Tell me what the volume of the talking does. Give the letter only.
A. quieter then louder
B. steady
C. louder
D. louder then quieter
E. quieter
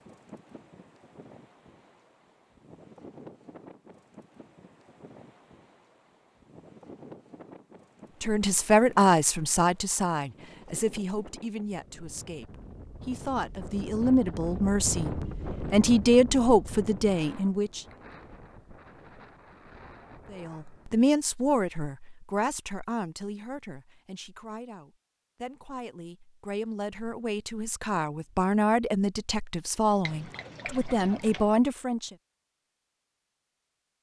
A.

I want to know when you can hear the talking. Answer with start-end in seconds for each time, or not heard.
8.2-17.8, 20.3-32.1.